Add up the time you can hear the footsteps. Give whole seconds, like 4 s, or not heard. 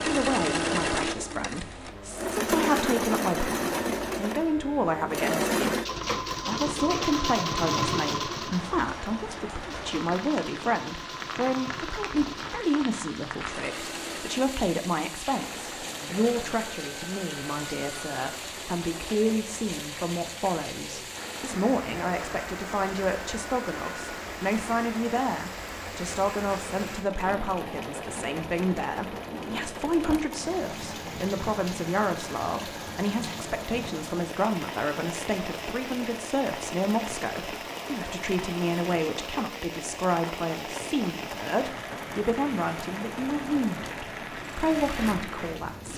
not heard.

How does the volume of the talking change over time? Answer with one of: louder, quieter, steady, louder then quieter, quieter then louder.
steady.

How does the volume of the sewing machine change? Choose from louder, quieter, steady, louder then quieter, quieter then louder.
quieter.